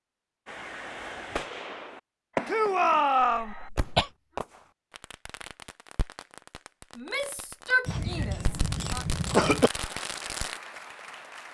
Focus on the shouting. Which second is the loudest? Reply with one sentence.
The volume of the shouting peaks at 3 seconds.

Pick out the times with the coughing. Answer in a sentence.
The coughing can be heard from 3.4 to 4.1 s and from 7.8 to 9.7 s.